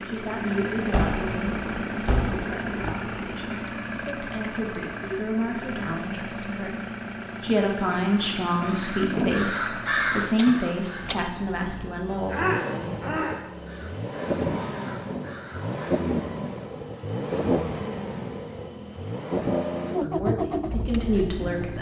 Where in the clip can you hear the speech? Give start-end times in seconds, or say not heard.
0.1-6.8, 7.4-12.4, 20.0-21.7.